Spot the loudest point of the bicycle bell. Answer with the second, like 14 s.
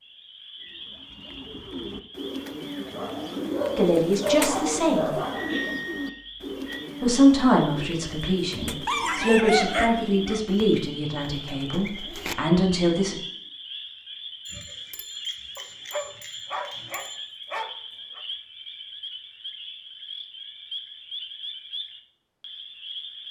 6 s.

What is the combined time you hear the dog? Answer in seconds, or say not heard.
7 s.